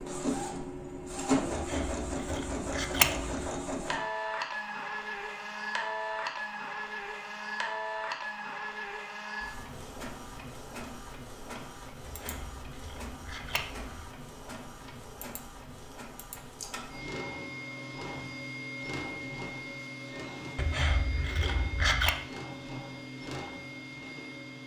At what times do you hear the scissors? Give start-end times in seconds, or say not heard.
1.5-3.5, 12.1-14.0, 20.6-22.1.